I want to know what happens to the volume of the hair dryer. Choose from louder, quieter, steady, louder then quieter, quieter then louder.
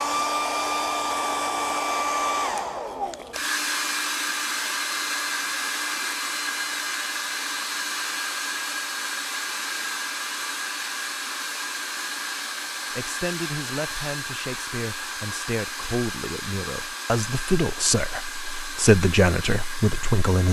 quieter.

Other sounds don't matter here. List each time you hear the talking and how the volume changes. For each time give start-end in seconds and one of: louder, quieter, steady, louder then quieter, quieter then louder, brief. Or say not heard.
12.9-20.4 louder.